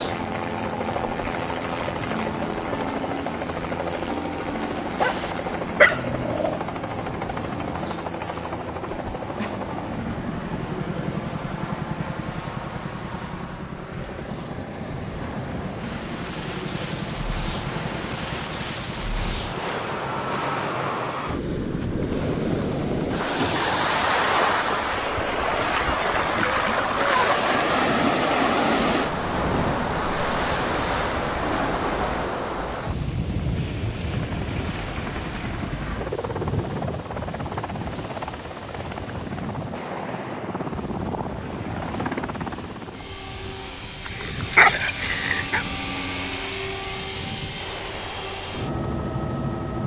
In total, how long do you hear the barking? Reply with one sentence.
The barking can be heard for 3 seconds in total.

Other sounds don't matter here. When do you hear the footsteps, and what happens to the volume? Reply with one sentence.
You can't hear the footsteps here.